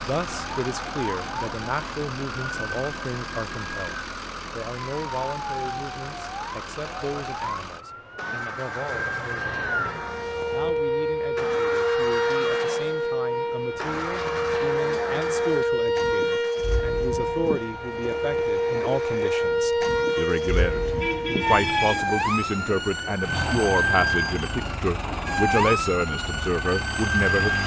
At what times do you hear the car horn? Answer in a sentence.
The car horn can be heard from 20.8 to 22.1 s.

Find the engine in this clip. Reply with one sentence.
You can hear the engine from 0.0 to 27.6 s.